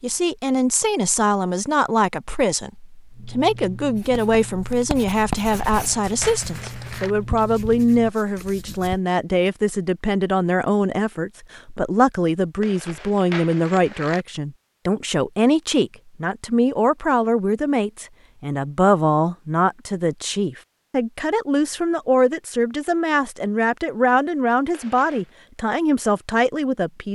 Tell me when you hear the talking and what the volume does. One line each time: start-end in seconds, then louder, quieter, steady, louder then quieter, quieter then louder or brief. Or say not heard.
0.0-27.1 steady.